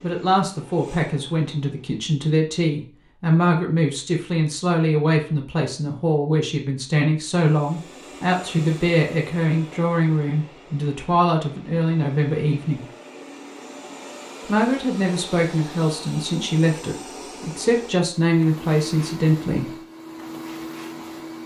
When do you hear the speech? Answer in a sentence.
You can hear the speech from 0.0 to 12.8 s and from 14.4 to 19.8 s.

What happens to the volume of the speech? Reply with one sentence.
The loudness of the speech stays about the same.